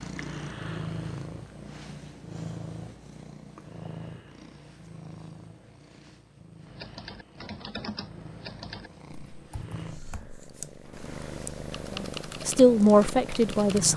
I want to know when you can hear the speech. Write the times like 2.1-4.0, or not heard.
11.9-13.9.